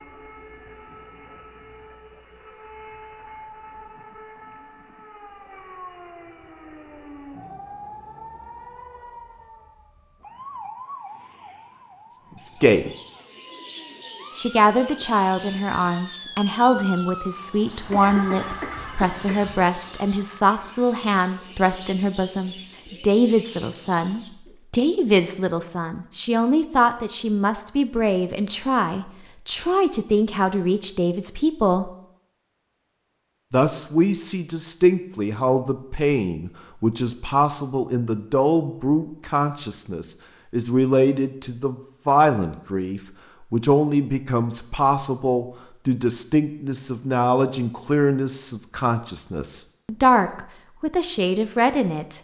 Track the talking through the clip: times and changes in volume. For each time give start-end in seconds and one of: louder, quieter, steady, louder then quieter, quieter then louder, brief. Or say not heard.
12.4-12.9 brief
14.3-31.9 steady
33.5-52.1 steady.